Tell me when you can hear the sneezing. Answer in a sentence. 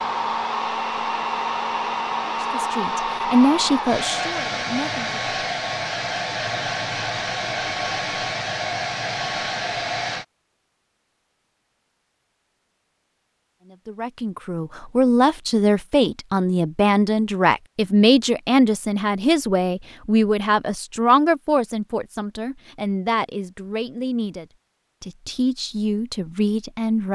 The sneezing can't be heard in this clip.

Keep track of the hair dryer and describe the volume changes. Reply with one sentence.
The volume of the hair dryer stays about the same.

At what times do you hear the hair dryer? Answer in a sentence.
You can hear the hair dryer from 0.0 to 10.2 s.